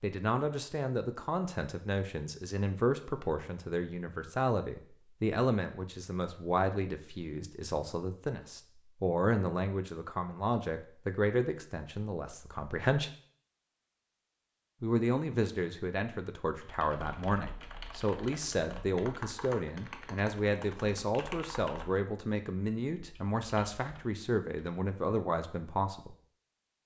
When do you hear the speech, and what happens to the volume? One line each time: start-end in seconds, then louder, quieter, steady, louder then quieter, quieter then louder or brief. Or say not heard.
0.0-13.1 steady
14.8-26.1 steady.